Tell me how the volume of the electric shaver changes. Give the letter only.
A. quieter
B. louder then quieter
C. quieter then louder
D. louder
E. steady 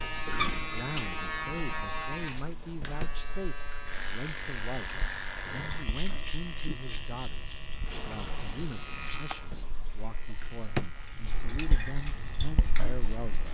A.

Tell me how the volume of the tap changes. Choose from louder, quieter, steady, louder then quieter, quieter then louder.
quieter then louder.